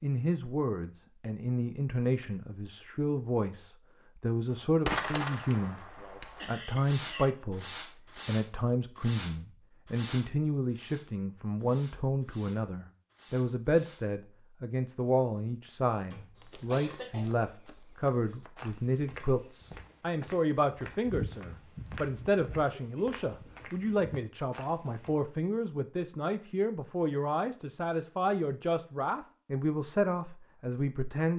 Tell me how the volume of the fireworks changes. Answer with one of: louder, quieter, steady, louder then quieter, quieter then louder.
quieter.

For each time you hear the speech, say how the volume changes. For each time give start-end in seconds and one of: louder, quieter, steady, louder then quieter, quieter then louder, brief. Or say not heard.
0.0-31.3 steady.